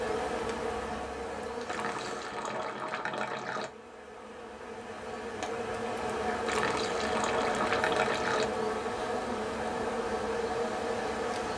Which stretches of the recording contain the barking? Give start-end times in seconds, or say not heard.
not heard.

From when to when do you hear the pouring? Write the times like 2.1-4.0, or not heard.
1.6-3.7, 6.5-8.5.